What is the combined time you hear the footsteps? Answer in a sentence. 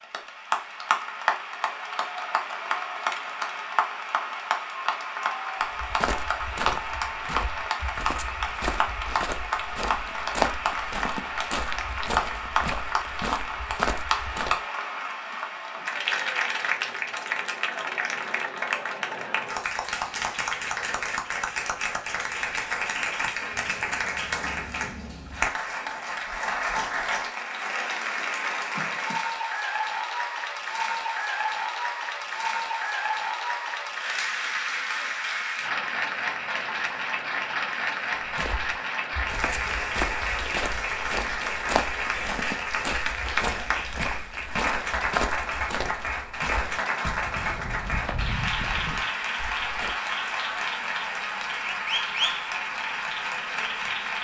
The footsteps can be heard for 21 seconds in total.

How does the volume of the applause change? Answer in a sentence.
The loudness of the applause stays about the same.